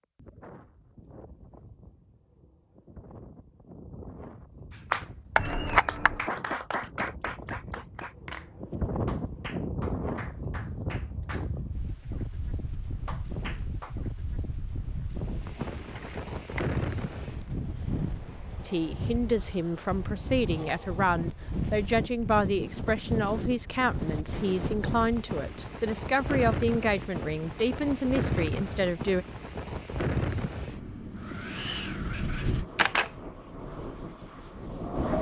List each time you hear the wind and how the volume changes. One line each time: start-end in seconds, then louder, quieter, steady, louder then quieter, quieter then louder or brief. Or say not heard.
0.0-35.1 louder.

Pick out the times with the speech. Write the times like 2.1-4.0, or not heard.
18.6-29.2.